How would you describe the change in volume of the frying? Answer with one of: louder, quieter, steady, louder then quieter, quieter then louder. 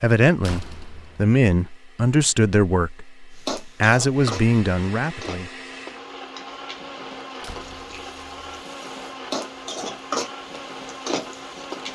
quieter then louder.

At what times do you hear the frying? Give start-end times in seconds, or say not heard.
3.4-11.9.